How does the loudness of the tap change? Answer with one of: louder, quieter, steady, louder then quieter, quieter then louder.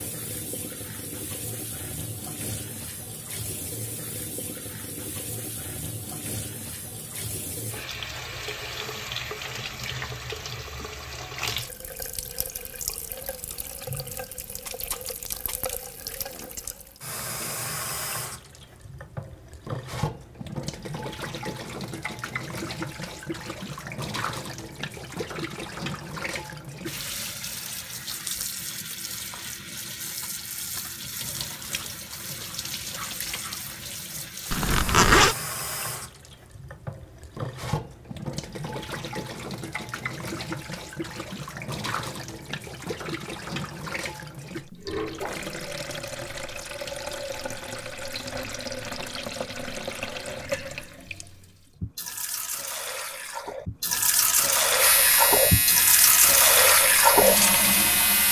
louder.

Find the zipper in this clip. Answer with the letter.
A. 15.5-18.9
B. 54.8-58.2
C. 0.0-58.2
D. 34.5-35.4
D.